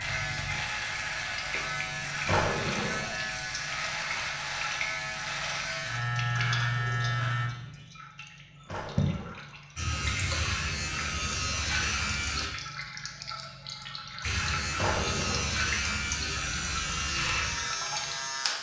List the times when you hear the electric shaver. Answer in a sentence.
The electric shaver can be heard from 0.0 to 7.5 s, from 9.8 to 12.5 s and from 14.2 to 18.5 s.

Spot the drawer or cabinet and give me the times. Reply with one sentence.
The drawer or cabinet can be heard from 2.2 to 3.1 s, from 8.7 to 9.4 s and from 14.8 to 15.6 s.